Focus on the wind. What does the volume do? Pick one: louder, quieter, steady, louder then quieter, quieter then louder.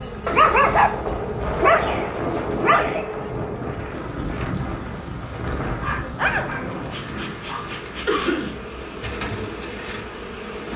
quieter.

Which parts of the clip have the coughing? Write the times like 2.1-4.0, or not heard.
1.8-3.1, 8.1-8.6.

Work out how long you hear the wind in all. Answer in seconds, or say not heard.
11 s.